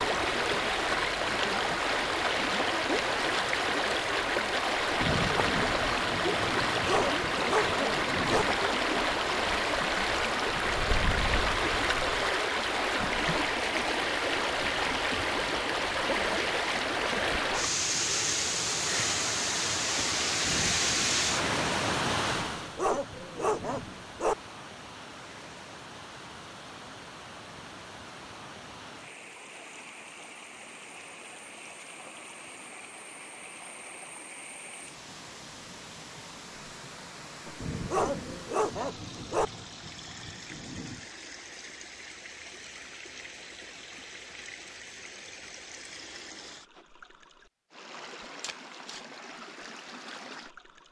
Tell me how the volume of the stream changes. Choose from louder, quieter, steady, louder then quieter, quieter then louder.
quieter.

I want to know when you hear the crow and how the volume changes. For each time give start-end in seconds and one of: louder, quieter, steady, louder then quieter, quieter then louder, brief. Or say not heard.
not heard.